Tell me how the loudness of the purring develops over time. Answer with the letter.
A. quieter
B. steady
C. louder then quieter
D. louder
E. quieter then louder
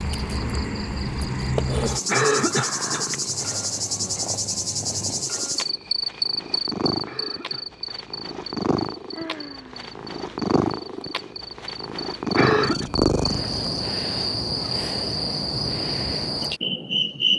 D.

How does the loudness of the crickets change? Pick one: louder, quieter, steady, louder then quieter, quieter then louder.
quieter then louder.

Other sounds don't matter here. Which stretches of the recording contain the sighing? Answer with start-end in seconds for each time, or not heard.
2.5-3.2, 9.1-9.9.